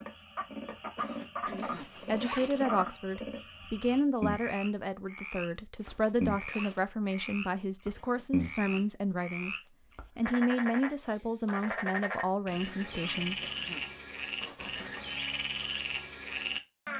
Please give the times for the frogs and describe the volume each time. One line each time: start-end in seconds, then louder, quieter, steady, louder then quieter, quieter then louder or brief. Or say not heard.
0.0-16.9 steady.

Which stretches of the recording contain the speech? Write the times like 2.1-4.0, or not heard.
1.4-13.4.